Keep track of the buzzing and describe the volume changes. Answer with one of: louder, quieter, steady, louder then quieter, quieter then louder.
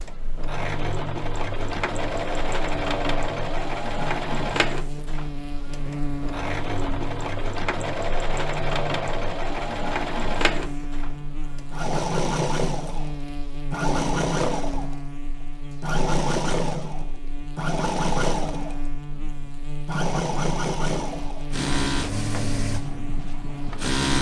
steady.